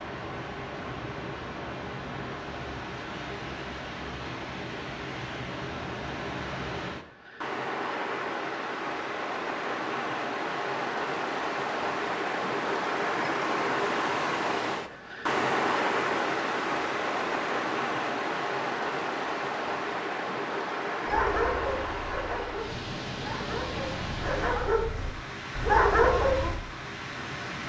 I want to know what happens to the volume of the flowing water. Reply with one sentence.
The loudness of the flowing water goes up, then down.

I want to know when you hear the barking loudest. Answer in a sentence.
The loudest moment of the barking is at 26 seconds.